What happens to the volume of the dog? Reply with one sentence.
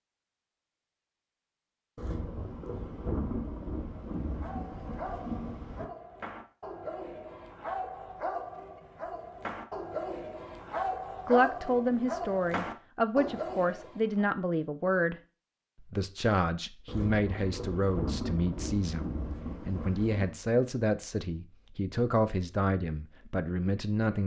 The loudness of the dog goes up.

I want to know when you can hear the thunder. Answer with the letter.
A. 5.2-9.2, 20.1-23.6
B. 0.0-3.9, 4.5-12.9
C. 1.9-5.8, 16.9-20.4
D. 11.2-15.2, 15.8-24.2
C.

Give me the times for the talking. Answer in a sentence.
The talking can be heard from 11.2 to 15.2 s and from 15.8 to 24.2 s.